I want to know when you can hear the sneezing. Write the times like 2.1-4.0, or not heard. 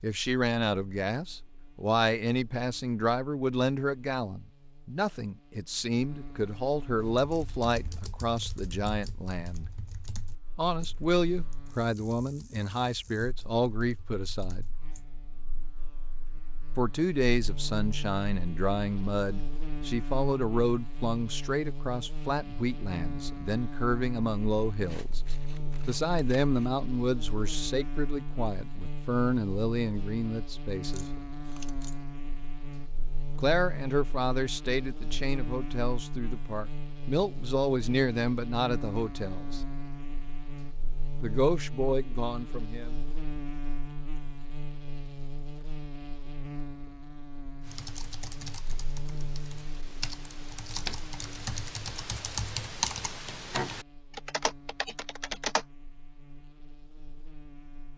not heard.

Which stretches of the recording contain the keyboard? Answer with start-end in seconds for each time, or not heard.
7.0-15.1, 47.6-55.6.